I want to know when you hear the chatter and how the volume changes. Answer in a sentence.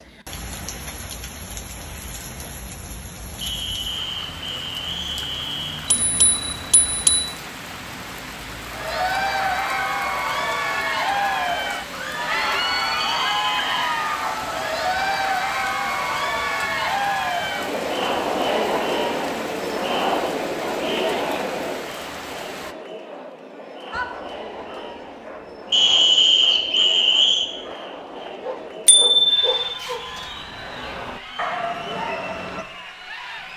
You can hear the chatter from 8.7 to 33.5 s, getting quieter.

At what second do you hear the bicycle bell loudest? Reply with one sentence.
The loudest moment of the bicycle bell is at 29 seconds.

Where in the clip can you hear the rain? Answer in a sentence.
You can hear the rain from 0.0 to 22.8 s.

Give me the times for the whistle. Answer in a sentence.
You can hear the whistle from 3.4 to 6.0 s, from 12.9 to 13.7 s and from 25.7 to 27.5 s.